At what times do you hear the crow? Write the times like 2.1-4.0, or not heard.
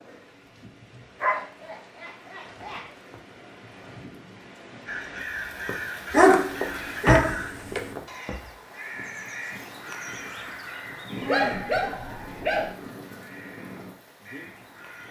4.8-15.0.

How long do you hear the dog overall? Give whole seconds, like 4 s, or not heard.
5 s.